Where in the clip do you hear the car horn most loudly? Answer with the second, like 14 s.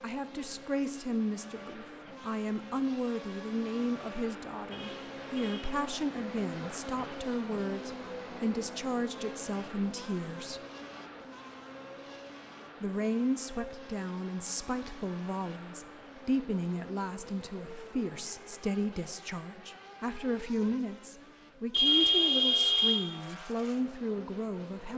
22 s.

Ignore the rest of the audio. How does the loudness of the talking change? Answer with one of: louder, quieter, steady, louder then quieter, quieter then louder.
steady.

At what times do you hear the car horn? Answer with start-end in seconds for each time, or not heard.
4.7-5.8, 21.7-23.0.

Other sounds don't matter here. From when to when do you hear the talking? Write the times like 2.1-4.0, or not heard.
0.0-10.6, 12.8-24.9.